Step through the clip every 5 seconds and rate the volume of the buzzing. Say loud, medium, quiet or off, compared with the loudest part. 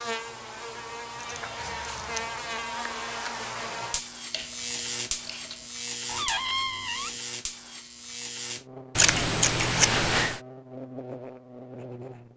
loud, loud, medium.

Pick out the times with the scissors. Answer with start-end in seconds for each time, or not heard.
1.2-2.2, 4.3-5.6, 8.9-10.4.